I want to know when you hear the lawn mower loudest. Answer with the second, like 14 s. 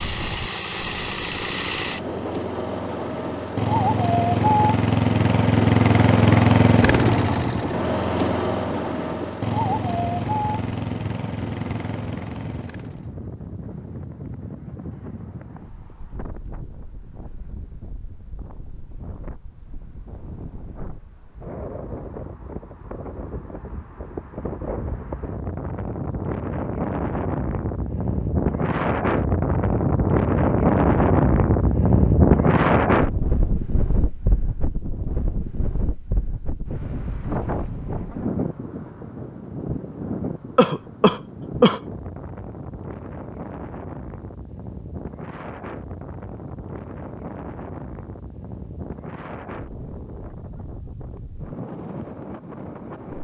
6 s.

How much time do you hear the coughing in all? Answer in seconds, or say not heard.
2 s.